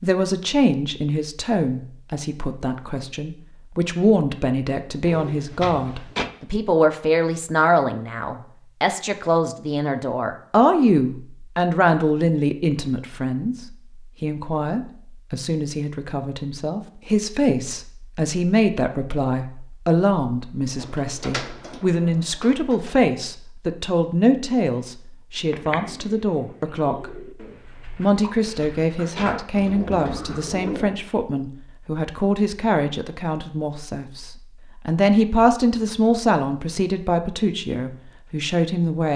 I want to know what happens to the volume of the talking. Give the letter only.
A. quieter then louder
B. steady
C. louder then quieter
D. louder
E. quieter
B.